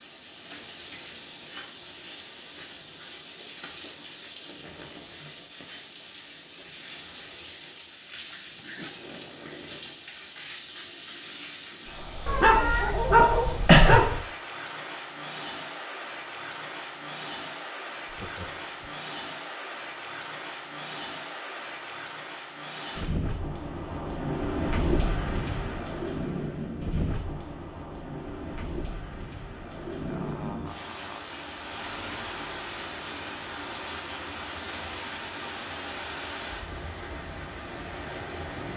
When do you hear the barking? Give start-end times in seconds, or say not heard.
12.2-14.2.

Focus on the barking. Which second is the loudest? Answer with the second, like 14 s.
14 s.